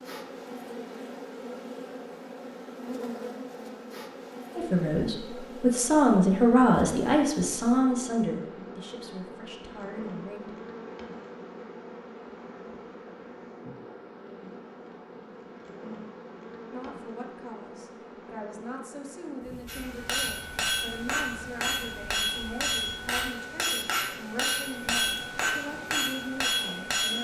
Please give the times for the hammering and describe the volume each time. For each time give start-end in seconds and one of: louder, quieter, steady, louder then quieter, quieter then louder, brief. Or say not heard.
19.6-27.1 steady.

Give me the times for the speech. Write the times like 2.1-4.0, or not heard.
4.5-10.5, 16.7-27.1.